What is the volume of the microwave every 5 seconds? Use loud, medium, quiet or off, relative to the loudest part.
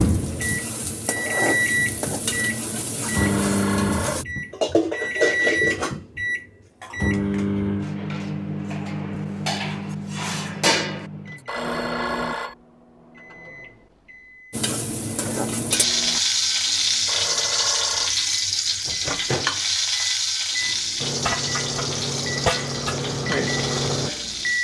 loud, loud, medium, medium, loud.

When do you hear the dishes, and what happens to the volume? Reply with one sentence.
You can hear the dishes briefly from 4.5 to 6.0 s; and from 6.8 to 11.1 s, getting louder.